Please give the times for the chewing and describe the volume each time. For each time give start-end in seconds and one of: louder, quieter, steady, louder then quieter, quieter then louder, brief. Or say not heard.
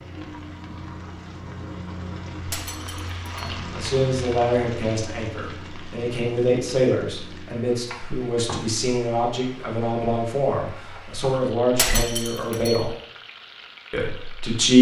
not heard.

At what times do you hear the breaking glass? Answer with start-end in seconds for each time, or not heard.
2.5-3.5, 11.8-12.8.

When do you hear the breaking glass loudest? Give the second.
12 s.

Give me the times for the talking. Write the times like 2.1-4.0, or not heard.
3.8-12.9, 13.9-14.7.